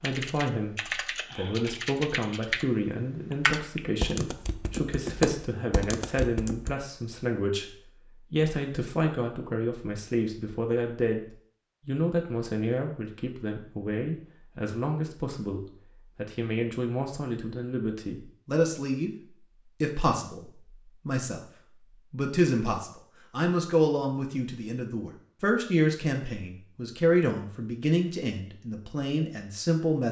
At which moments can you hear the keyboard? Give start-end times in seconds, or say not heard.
0.0-2.6, 3.3-6.8.